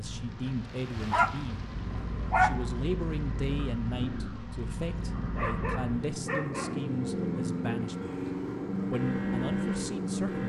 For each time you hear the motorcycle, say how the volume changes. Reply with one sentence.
The motorcycle can be heard from 0.0 to 10.4 s, getting louder.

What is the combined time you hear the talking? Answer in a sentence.
You can hear the talking for 9 seconds altogether.